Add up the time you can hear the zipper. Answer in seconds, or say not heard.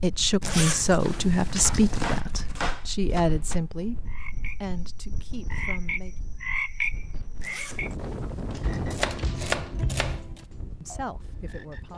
3 s.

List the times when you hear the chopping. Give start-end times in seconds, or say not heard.
1.6-3.6, 8.6-10.4.